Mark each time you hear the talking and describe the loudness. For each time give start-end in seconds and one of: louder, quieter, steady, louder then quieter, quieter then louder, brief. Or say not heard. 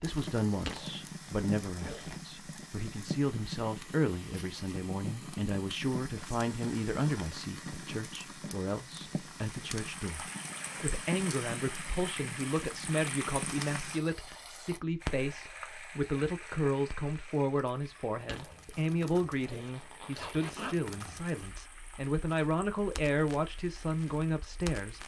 0.0-25.0 steady.